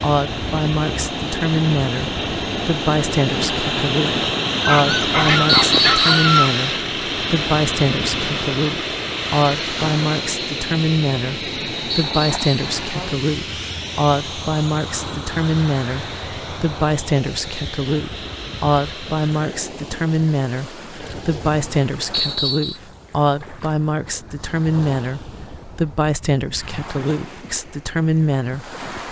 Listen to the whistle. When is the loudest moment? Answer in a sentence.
The volume of the whistle peaks at 6 seconds.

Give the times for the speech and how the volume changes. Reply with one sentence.
You can hear the speech from 0.0 to 28.8 s, at a steady volume.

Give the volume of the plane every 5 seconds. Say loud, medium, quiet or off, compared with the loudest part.
loud, loud, medium, medium, off, off.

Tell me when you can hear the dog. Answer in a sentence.
The dog can be heard from 4.7 to 6.5 s.